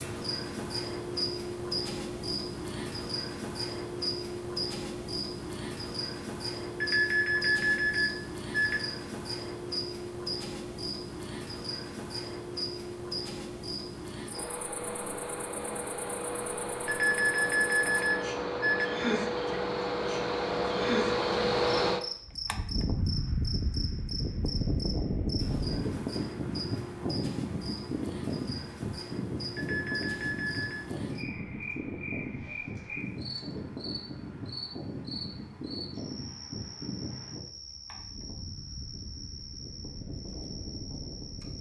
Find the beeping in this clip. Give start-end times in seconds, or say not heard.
6.8-8.8, 16.9-18.9, 29.6-30.9.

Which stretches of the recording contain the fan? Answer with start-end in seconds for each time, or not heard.
14.3-41.5.